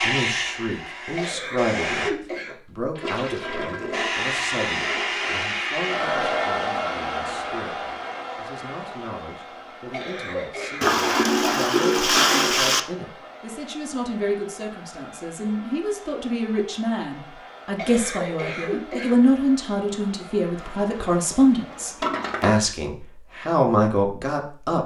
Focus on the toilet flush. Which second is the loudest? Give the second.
12 s.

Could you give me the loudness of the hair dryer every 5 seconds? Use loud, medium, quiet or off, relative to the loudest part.
loud, loud, quiet, quiet, quiet.